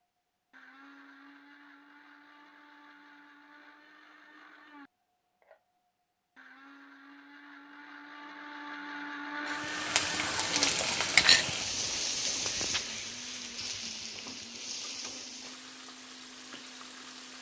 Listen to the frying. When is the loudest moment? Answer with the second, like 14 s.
11 s.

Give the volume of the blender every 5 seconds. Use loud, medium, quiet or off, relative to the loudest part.
quiet, loud, loud, quiet.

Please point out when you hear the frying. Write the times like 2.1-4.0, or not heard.
9.4-17.3.